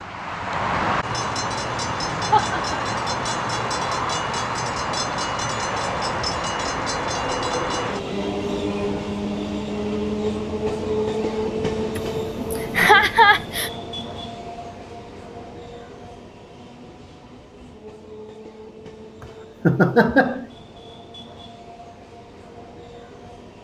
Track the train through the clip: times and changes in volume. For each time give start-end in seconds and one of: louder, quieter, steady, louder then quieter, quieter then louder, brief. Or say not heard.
0.0-23.5 quieter.